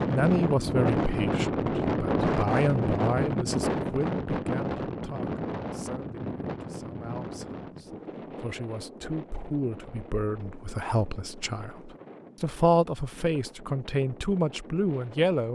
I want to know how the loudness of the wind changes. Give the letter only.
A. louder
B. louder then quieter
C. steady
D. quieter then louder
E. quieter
E.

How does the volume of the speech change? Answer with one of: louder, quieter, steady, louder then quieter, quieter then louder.
quieter then louder.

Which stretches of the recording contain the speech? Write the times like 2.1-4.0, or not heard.
0.1-15.5.